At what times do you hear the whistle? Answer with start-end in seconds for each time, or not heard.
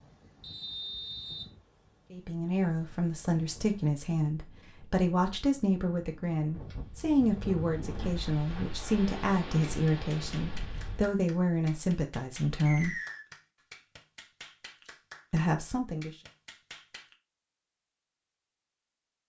0.4-1.4, 12.7-13.2.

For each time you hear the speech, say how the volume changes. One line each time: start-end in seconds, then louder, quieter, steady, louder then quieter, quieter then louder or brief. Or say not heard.
2.1-12.9 steady
15.3-16.1 brief.